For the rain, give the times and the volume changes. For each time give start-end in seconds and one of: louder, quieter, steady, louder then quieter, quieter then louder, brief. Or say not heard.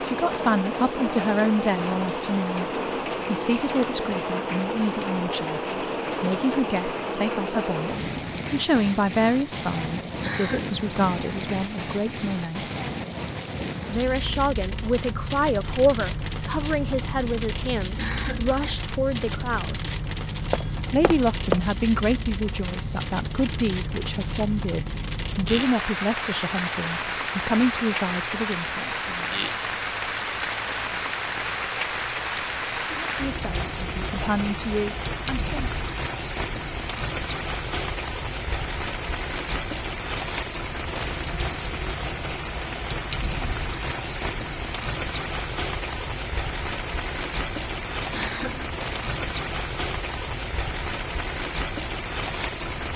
0.0-52.9 steady.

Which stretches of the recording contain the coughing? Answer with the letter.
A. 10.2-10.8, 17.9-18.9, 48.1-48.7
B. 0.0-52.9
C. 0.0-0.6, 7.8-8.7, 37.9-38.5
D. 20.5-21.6
A.